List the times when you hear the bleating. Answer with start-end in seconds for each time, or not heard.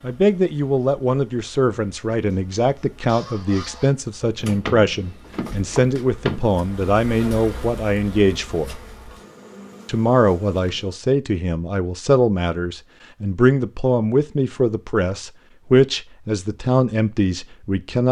not heard.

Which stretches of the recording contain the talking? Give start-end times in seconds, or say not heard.
0.0-8.8, 9.8-18.0.